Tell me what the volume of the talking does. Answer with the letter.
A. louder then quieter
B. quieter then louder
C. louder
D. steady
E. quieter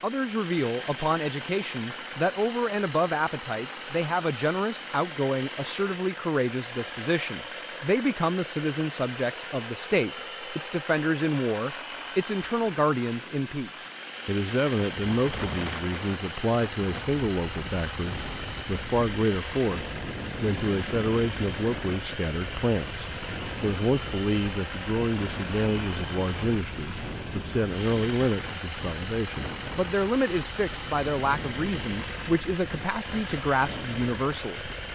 D.